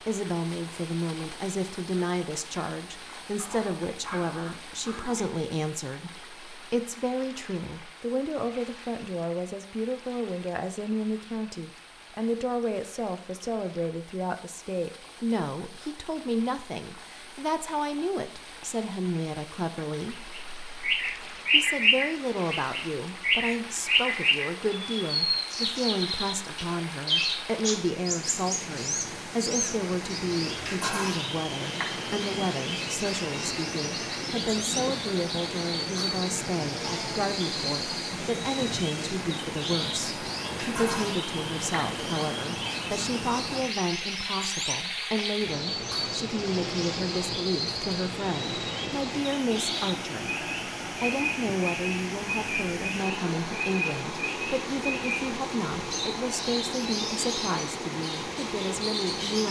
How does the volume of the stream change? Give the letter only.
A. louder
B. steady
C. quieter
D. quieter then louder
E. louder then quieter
A.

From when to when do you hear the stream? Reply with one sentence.
You can hear the stream from 0.0 to 59.4 s.